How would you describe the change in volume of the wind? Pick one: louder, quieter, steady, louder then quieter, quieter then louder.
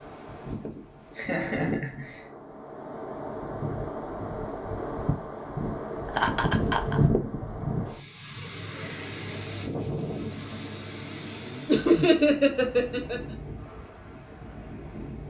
louder then quieter.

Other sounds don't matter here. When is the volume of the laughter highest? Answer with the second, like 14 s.
12 s.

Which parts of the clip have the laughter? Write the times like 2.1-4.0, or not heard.
0.7-2.2, 6.2-7.0, 11.7-13.2.